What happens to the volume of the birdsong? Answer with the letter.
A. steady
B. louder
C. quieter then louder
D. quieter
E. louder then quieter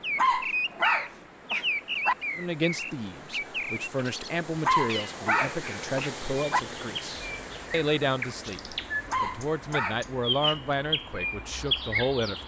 C.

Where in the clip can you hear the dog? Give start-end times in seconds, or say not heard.
0.1-2.1, 4.7-6.6, 9.1-10.6.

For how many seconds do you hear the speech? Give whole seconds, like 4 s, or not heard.
10 s.